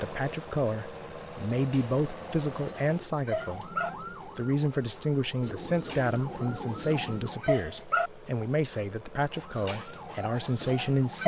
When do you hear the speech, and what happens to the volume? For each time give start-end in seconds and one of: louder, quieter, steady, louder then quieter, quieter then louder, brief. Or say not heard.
0.0-11.2 steady.